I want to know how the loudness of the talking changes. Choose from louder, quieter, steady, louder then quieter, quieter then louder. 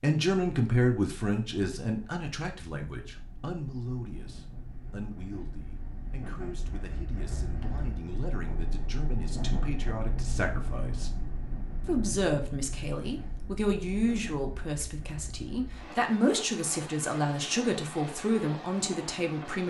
quieter then louder.